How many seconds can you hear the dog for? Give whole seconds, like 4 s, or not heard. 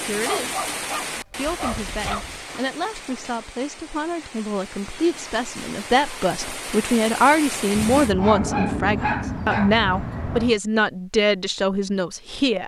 5 s.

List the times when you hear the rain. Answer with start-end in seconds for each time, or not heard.
0.0-8.2.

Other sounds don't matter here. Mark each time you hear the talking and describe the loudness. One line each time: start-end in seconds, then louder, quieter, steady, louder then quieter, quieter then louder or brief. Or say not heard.
0.0-0.6 brief
1.4-12.6 louder.